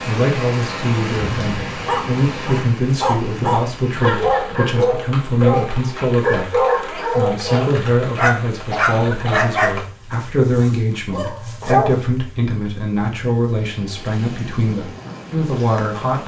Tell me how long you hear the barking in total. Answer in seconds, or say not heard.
10 s.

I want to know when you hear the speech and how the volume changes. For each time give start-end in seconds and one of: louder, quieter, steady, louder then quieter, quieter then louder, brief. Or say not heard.
0.0-16.2 steady.